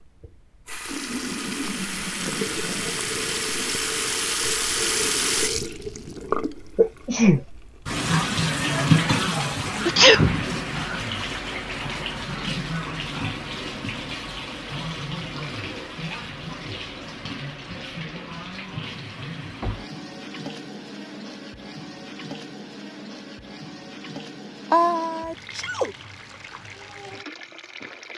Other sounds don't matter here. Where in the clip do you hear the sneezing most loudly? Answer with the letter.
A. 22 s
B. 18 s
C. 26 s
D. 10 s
D.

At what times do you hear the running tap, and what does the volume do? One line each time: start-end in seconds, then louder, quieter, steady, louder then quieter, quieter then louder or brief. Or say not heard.
0.0-28.1 quieter.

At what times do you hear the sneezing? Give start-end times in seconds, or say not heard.
6.8-7.4, 9.8-10.4, 24.7-25.9.